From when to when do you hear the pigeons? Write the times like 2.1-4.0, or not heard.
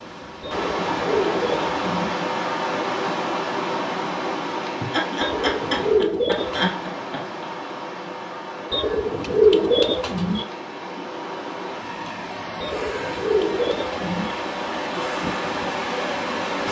0.4-2.1, 5.2-6.7, 8.7-10.4, 12.6-14.3.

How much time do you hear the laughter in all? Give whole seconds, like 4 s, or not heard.
3 s.